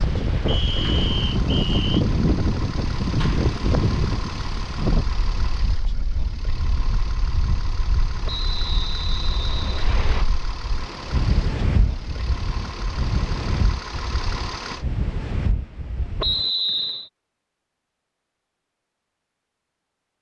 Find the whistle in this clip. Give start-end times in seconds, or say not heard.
0.5-2.0, 8.2-10.2, 16.2-17.1.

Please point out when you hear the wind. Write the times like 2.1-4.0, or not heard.
0.0-16.5.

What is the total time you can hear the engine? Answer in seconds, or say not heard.
15 s.